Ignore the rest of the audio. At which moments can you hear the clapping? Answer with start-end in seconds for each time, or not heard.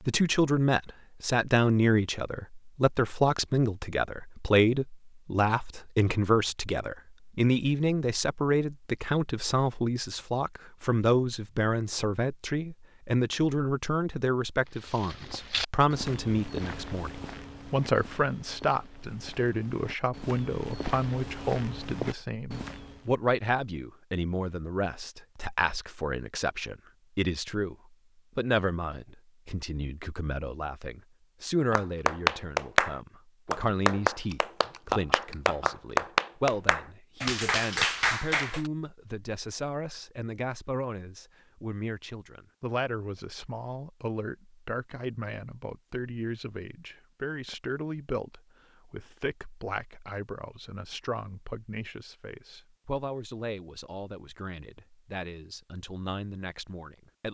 31.7-38.7.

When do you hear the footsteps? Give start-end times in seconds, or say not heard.
14.7-23.1.